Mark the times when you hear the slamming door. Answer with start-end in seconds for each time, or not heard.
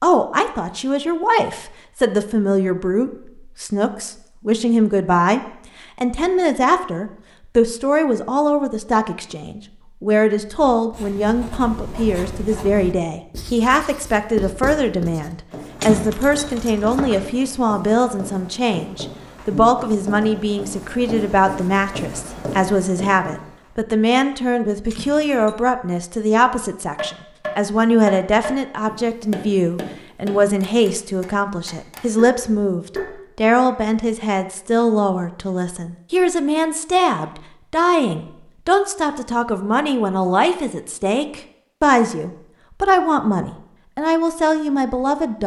not heard.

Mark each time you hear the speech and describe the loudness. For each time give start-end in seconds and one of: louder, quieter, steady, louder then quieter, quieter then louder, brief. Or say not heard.
0.0-45.4 steady.